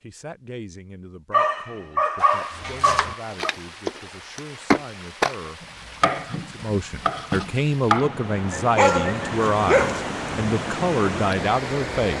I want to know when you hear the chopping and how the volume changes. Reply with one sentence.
You can hear the chopping from 2.5 to 8.2 s, getting louder then quieter.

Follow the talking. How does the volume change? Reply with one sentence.
The volume of the talking goes up.